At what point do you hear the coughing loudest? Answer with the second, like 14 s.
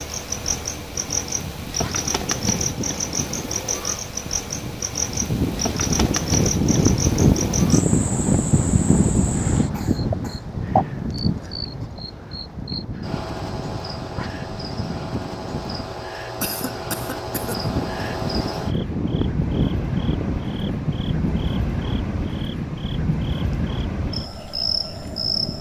17 s.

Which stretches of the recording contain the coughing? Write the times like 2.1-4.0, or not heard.
9.7-10.5, 16.4-17.7.